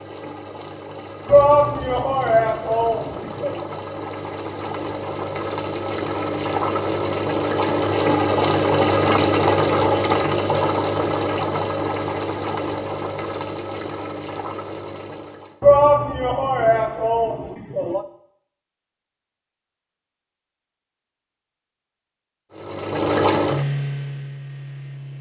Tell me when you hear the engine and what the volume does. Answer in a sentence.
The engine can be heard from 0.0 to 15.7 s, getting louder then quieter; and briefly from 22.5 to 25.1 s.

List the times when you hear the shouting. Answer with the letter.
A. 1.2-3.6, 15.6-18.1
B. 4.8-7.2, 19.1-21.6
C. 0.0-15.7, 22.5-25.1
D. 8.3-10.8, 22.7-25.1
A.